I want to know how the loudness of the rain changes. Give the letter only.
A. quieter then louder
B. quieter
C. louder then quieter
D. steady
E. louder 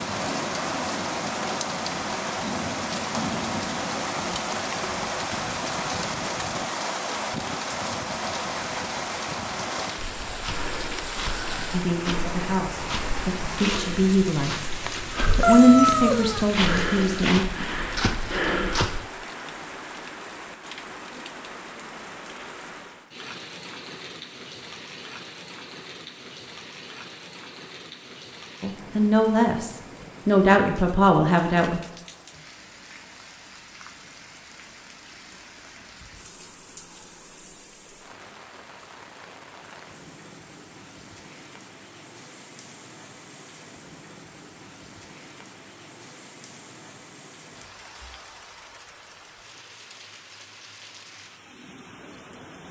B.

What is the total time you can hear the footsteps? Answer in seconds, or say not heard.
9 s.